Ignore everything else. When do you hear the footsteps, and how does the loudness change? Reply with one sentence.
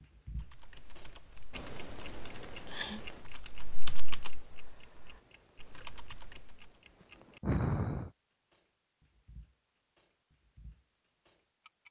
The footsteps can't be heard in this clip.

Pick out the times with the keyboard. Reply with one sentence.
The keyboard can be heard from 0.3 to 6.7 s.